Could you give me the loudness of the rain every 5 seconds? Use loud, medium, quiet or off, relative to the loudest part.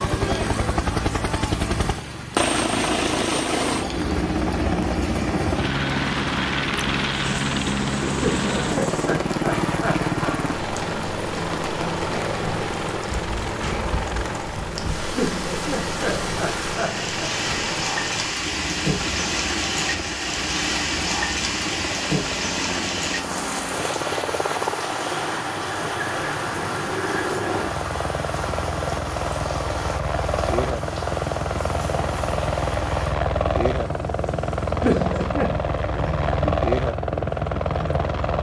medium, medium, medium, loud, loud, loud, medium, medium.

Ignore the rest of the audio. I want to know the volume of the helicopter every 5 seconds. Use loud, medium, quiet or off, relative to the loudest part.
loud, loud, loud, medium, medium, medium, loud, loud.